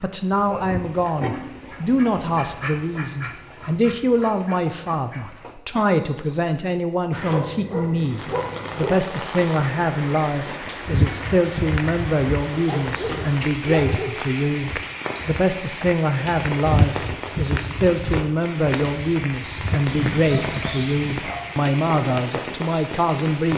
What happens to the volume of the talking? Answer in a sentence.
The volume of the talking stays about the same.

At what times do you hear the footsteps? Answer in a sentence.
You can hear the footsteps from 10.7 to 21.6 s.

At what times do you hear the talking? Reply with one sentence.
You can hear the talking from 0.0 to 23.5 s.